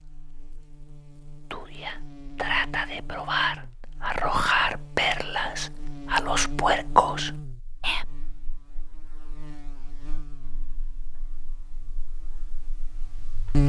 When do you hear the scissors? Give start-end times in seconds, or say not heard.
not heard.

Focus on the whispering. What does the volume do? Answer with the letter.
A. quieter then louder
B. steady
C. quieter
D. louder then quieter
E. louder
E.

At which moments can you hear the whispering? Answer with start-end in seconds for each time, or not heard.
1.5-8.1.